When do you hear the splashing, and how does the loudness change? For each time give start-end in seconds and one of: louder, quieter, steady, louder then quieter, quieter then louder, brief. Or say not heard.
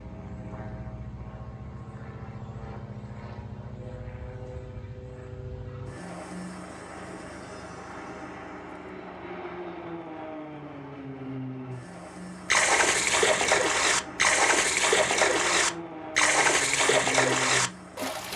12.5-18.3 steady.